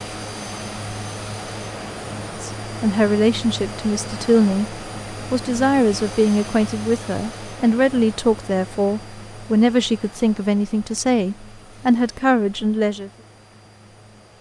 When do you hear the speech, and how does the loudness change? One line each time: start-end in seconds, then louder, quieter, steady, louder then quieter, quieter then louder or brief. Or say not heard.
2.4-13.1 steady.